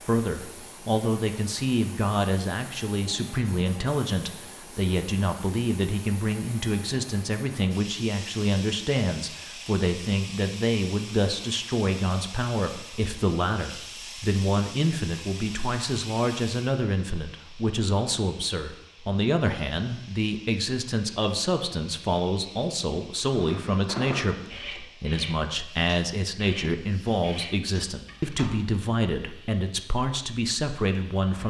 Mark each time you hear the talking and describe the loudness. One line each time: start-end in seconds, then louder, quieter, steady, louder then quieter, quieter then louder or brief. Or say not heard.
0.1-31.4 steady.